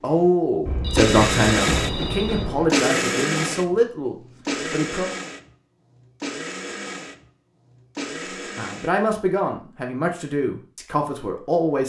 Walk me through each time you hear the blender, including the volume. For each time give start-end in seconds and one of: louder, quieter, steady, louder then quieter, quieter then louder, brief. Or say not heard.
0.1-8.9 quieter.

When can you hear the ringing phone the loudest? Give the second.
2 s.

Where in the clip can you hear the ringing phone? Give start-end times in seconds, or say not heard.
0.7-2.6.